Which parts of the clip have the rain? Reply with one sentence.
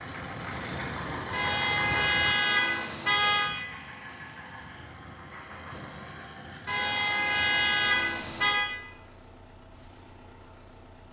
You can't hear the rain here.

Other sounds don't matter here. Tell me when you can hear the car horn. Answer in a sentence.
The car horn can be heard from 1.3 to 3.5 s and from 6.7 to 8.7 s.